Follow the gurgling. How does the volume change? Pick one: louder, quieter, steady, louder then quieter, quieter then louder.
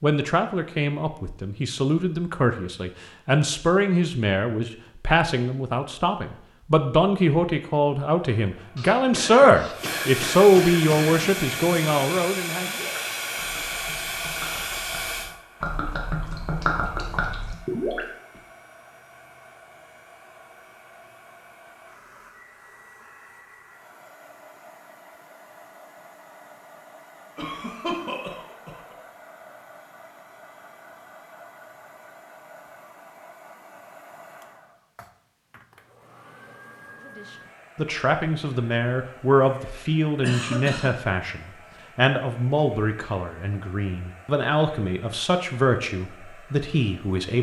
louder.